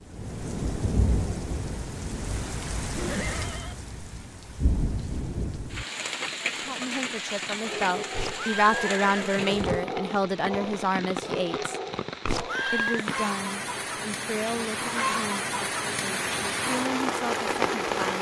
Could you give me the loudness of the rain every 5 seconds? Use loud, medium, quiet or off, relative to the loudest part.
medium, medium, medium, loud.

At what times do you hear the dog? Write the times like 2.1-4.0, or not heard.
7.6-12.8.